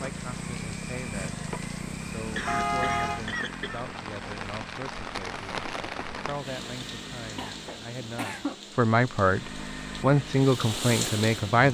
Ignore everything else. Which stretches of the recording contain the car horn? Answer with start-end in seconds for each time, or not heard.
2.5-3.2.